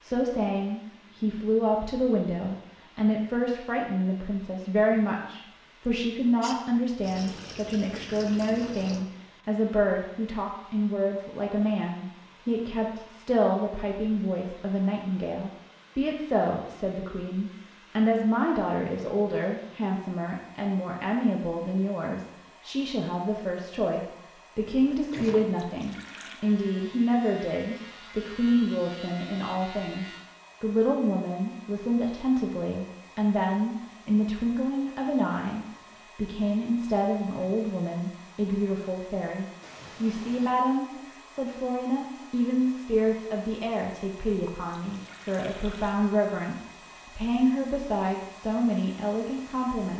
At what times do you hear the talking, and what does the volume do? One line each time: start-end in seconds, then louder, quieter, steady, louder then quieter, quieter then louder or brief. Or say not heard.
0.0-49.9 steady.